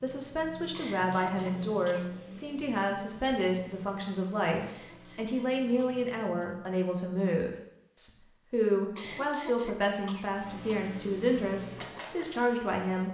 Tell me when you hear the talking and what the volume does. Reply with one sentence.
You can hear the talking from 0.0 to 13.0 s, at a steady volume.